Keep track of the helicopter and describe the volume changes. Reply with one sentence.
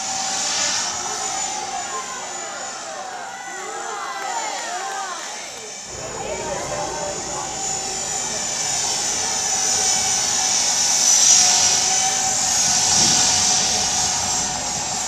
The volume of the helicopter goes down, then up.